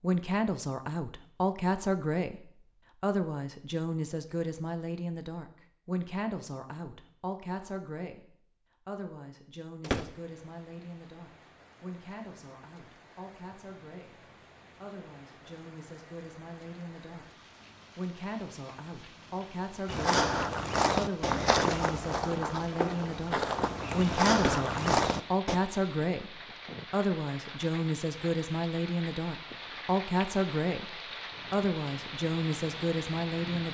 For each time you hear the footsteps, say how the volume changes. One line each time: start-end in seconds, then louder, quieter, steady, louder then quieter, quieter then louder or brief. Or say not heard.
19.9-25.6 quieter then louder.